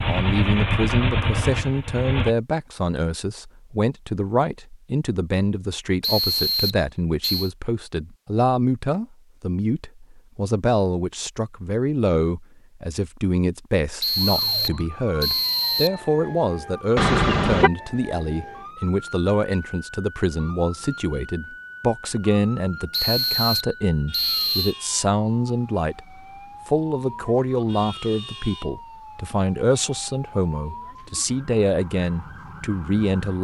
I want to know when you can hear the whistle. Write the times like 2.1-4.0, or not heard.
6.0-7.5, 14.0-16.0, 22.9-24.8.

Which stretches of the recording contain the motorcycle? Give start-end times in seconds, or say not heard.
0.0-2.4.